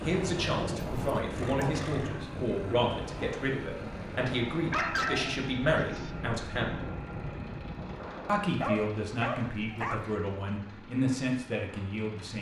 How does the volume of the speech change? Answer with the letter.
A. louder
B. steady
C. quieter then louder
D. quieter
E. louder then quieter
B.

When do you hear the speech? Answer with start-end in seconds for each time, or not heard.
0.0-6.8, 8.2-12.3.